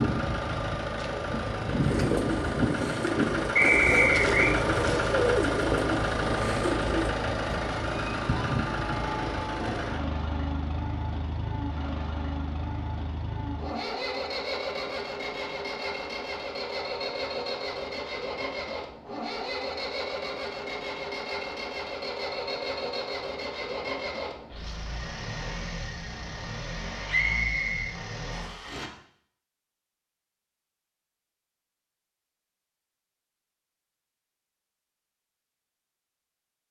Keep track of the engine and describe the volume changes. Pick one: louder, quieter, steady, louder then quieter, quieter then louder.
quieter.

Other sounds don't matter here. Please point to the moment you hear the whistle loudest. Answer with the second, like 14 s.
4 s.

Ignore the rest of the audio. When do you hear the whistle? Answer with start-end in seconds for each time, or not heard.
3.5-4.5, 27.1-28.6.